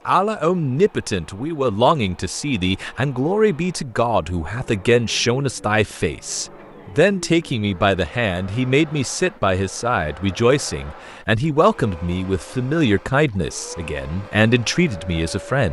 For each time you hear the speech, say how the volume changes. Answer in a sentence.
The speech can be heard from 0.1 to 15.6 s, at a steady volume.